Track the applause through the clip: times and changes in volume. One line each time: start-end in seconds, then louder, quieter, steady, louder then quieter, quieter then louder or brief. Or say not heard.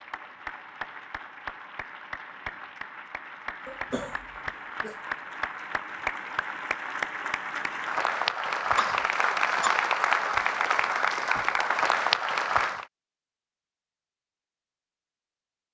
0.0-12.8 louder.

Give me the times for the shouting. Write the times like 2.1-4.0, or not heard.
not heard.